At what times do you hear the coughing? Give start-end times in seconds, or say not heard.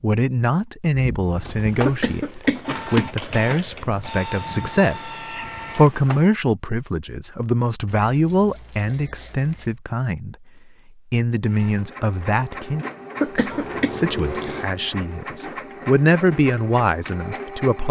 1.9-3.8, 13.2-13.9.